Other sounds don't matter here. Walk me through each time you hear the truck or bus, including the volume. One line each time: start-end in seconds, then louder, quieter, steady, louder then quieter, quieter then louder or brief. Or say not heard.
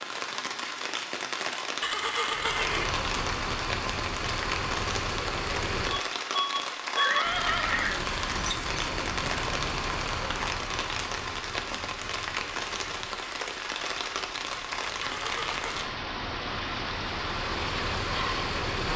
2.2-18.9 quieter then louder.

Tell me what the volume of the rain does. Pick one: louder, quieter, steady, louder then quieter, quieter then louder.
steady.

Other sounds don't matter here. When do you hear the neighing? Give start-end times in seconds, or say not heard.
1.8-3.0, 7.0-8.1, 15.0-15.9.